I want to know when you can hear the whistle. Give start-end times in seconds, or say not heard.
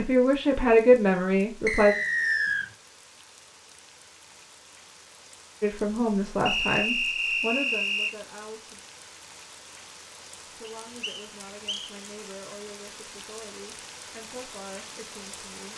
1.6-2.7, 6.5-8.2, 10.7-11.9.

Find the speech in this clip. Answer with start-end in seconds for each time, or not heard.
0.0-1.9, 5.6-8.8, 10.5-15.7.